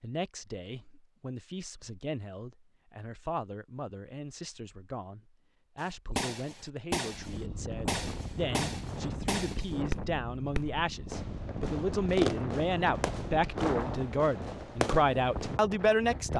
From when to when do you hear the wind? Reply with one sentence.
You can hear the wind from 7.0 to 16.3 s.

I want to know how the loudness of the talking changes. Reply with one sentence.
The volume of the talking goes up.